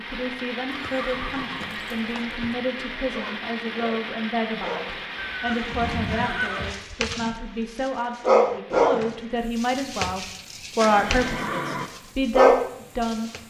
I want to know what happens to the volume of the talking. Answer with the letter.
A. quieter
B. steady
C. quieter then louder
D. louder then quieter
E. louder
E.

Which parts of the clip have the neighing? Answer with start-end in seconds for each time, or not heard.
0.7-2.5, 5.2-7.1, 10.8-11.9.